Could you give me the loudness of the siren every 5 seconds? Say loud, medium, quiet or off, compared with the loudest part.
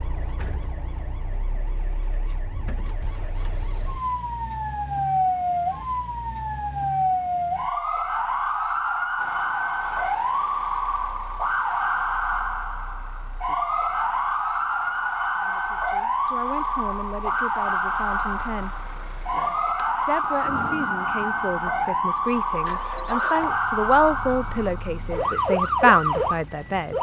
medium, loud, loud, loud, loud, loud.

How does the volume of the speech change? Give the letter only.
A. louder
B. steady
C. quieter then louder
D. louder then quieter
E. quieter
A.